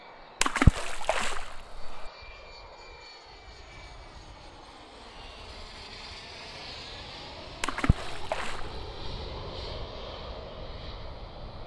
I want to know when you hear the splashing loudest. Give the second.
1 s.